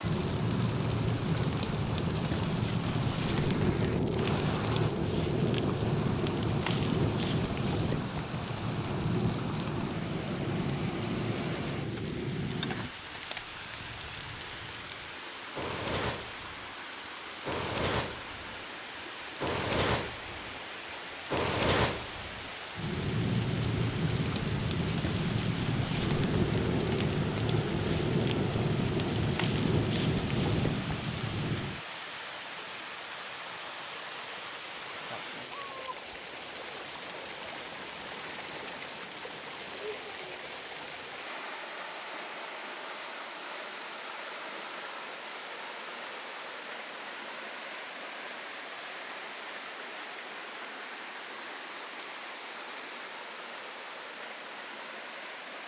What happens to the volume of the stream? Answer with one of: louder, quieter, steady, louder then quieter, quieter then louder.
steady.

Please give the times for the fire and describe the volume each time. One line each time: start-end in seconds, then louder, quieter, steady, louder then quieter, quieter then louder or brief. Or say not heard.
0.0-31.8 quieter then louder.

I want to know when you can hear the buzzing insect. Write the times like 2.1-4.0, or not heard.
not heard.